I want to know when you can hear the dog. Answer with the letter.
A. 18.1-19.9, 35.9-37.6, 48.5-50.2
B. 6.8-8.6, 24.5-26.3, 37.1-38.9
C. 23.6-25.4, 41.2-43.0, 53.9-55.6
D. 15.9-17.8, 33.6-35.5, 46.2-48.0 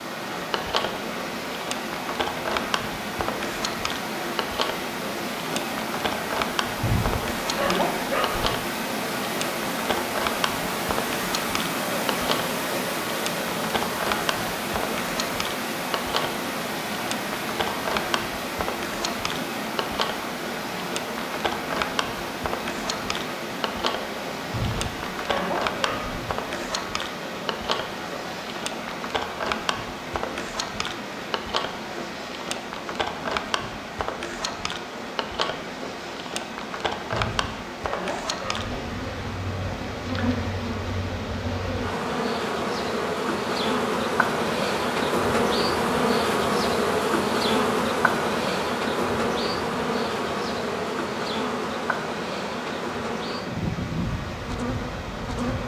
B.